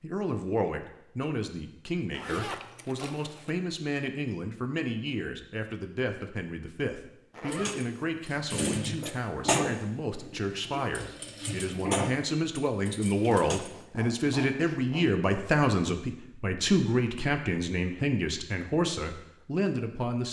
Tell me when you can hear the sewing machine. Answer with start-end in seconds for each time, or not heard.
7.5-13.7.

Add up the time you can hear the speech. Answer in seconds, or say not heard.
20 s.